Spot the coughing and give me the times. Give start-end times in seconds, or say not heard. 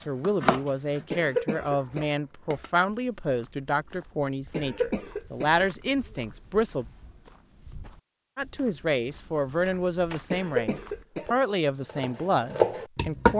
1.1-2.7, 4.5-5.5, 10.3-11.3.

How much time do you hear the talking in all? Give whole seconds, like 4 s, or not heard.
12 s.